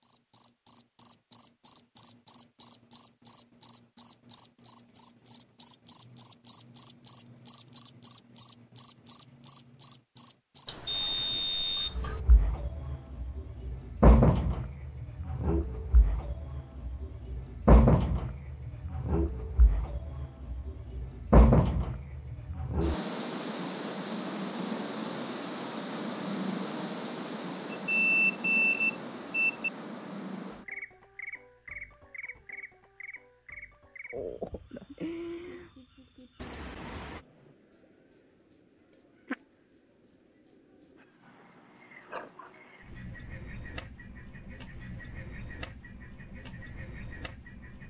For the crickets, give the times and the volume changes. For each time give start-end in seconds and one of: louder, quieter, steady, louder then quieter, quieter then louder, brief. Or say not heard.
0.0-47.8 quieter.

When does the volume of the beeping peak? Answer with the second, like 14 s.
28 s.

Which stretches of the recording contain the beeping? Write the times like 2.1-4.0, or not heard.
10.7-12.2, 27.7-29.7, 36.4-37.2.